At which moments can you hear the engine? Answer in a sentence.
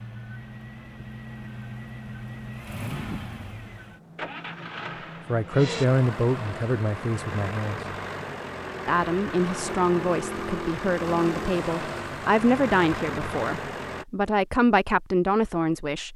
You can hear the engine from 0.0 to 14.1 s.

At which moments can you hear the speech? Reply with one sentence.
You can hear the speech from 5.2 to 7.8 s and from 8.8 to 16.1 s.